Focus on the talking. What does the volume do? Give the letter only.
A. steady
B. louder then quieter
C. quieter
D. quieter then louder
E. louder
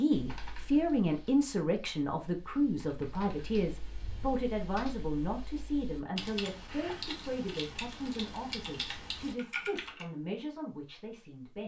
C.